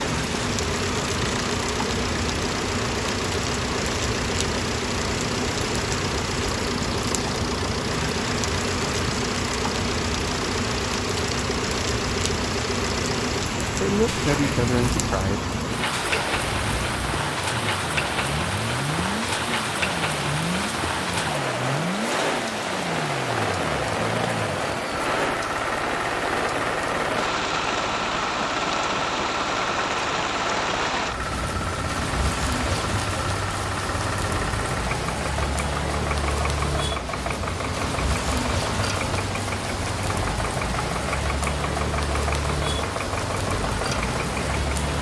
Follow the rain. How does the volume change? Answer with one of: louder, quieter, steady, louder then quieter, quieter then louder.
steady.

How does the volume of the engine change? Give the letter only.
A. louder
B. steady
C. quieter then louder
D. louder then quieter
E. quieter
B.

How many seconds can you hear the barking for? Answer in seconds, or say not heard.
not heard.